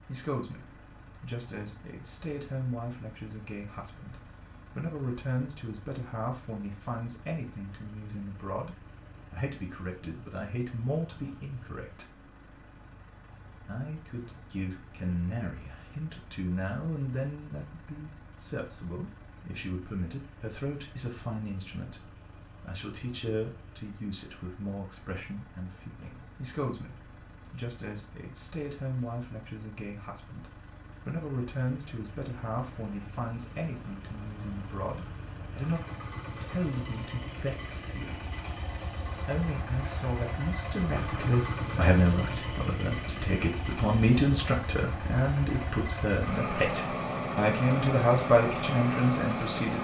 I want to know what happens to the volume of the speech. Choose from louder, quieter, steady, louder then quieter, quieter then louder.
louder.